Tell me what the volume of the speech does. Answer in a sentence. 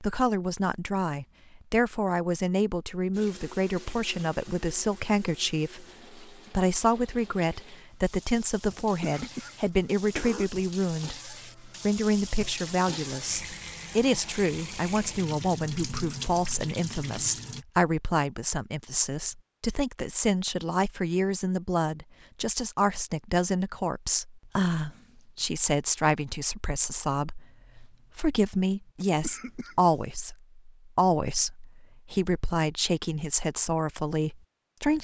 The loudness of the speech stays about the same.